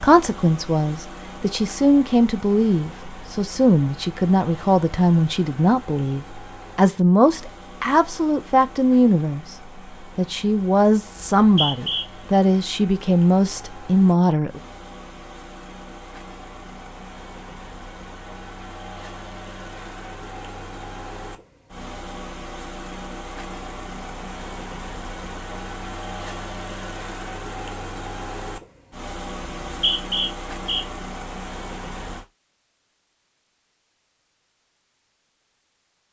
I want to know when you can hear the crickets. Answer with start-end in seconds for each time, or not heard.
not heard.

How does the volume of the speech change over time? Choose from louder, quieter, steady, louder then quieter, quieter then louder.
steady.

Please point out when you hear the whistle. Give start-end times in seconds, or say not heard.
11.2-12.1, 29.6-30.9.